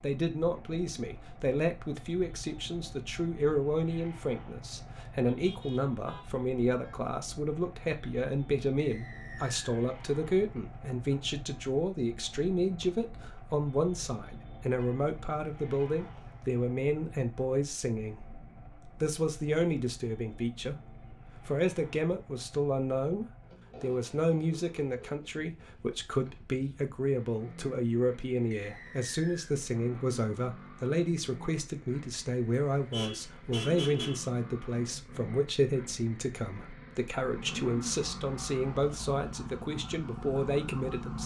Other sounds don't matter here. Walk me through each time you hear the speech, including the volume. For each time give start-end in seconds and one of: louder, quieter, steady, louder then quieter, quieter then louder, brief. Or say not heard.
0.0-18.2 steady
19.0-20.8 brief
21.4-41.2 steady.